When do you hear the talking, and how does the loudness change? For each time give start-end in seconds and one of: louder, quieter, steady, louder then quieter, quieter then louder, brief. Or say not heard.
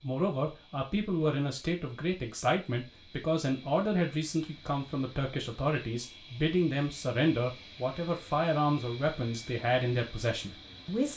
0.0-11.1 steady.